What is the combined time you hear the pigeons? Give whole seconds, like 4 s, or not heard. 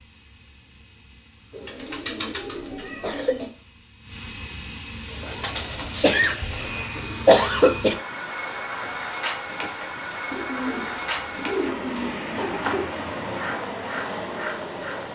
7 s.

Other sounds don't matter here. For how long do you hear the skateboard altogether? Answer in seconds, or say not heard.
7 s.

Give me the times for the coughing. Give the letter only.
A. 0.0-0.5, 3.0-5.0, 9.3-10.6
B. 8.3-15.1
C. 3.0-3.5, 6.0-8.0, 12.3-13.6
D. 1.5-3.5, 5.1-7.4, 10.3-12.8
C.